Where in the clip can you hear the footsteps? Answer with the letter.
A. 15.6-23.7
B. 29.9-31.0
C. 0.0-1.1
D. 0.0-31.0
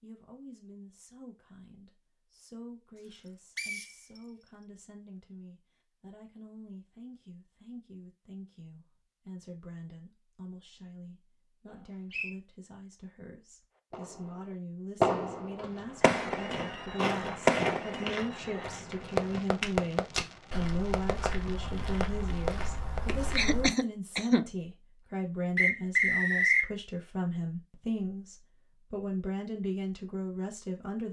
A.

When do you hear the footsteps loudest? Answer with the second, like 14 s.
18 s.